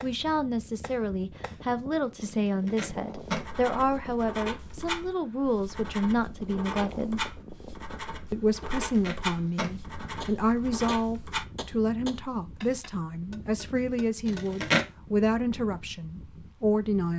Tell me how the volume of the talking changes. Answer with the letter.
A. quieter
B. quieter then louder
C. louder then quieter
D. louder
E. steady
E.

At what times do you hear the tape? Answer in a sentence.
The tape can be heard from 2.5 to 3.5 s, from 8.8 to 9.7 s and from 14.2 to 14.8 s.